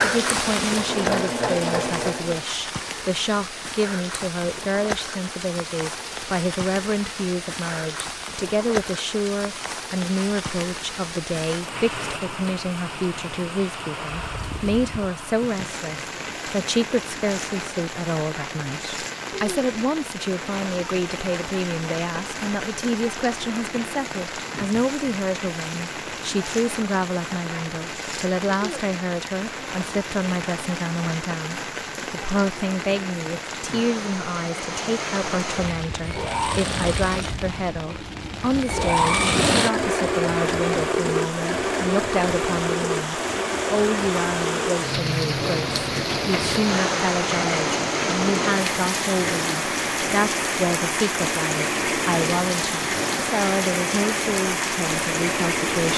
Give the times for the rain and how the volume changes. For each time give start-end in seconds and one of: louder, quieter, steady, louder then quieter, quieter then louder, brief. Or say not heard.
0.0-55.9 louder.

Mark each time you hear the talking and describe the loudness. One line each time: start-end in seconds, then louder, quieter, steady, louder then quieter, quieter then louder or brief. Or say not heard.
0.0-55.9 steady.